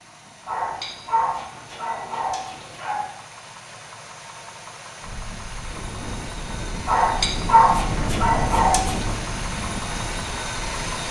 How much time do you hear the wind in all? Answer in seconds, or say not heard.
6 s.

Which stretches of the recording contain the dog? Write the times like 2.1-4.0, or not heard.
0.5-3.0, 6.8-9.2.